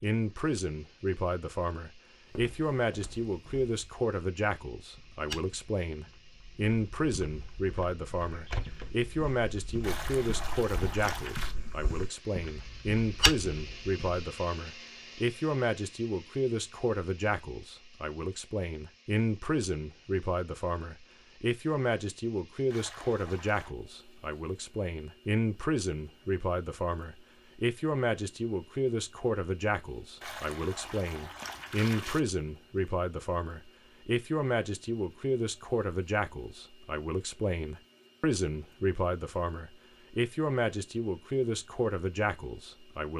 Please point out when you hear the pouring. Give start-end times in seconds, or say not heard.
9.8-11.6, 22.7-23.8, 30.2-32.2.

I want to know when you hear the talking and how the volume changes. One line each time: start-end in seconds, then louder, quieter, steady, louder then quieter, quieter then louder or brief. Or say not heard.
0.0-43.1 steady.